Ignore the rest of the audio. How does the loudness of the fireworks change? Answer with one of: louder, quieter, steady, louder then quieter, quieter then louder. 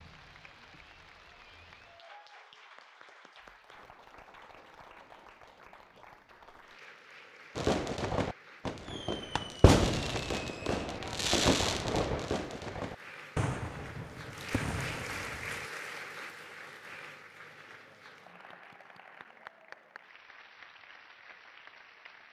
louder then quieter.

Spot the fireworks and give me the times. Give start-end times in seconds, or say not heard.
7.5-15.7.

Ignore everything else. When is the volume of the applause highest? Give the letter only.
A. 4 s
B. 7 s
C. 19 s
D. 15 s
D.